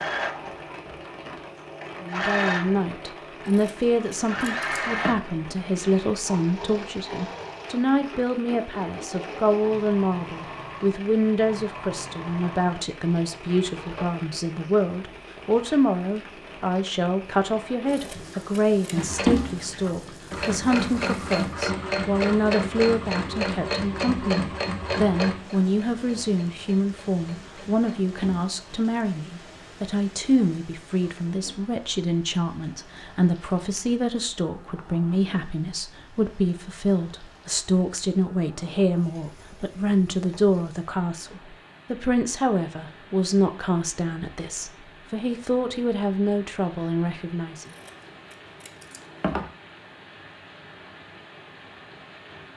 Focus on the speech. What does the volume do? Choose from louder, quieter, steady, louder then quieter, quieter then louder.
steady.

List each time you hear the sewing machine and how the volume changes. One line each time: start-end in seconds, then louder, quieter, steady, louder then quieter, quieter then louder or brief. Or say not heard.
0.0-14.1 quieter
18.9-28.8 quieter.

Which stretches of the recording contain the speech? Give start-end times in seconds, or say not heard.
2.0-47.6.